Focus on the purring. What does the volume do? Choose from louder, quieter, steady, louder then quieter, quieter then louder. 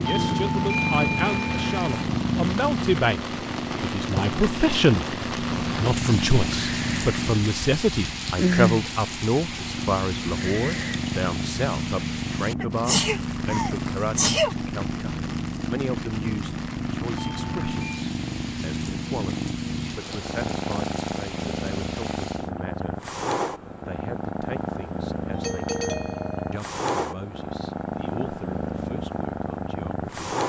steady.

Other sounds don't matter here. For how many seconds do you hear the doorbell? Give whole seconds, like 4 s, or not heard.
4 s.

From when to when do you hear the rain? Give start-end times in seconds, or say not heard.
0.0-22.5.